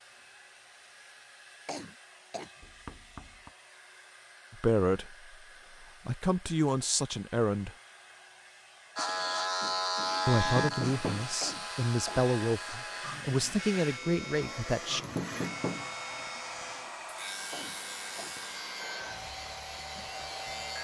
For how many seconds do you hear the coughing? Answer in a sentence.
You can hear the coughing for 3 seconds altogether.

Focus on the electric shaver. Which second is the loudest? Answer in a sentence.
The loudest moment of the electric shaver is at 10 seconds.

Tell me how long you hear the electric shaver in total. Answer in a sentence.
You can hear the electric shaver for 12 seconds altogether.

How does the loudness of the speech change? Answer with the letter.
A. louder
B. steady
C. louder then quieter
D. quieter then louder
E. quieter
B.